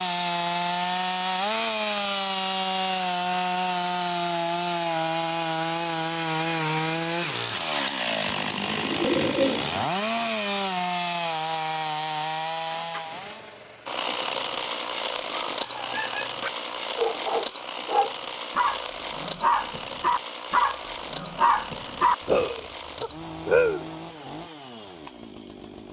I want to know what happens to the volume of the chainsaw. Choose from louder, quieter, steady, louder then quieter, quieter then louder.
quieter.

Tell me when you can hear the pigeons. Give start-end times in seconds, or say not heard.
8.2-9.9.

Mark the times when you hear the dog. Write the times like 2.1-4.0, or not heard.
15.4-23.9.